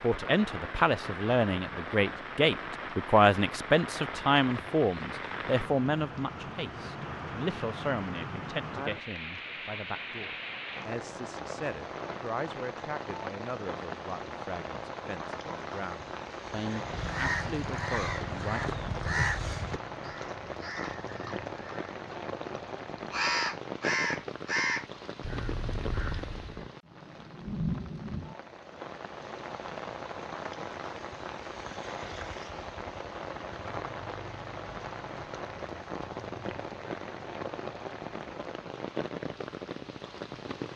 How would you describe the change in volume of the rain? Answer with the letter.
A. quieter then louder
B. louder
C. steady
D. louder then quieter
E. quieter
C.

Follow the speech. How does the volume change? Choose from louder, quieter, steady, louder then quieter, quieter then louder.
quieter.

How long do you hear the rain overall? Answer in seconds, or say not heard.
41 s.